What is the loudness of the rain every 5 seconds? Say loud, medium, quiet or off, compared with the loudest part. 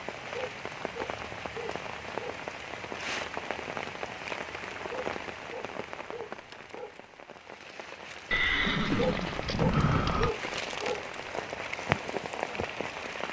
loud, medium, loud.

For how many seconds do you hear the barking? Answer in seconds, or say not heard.
6 s.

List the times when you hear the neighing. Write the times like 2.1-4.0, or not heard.
8.3-10.3.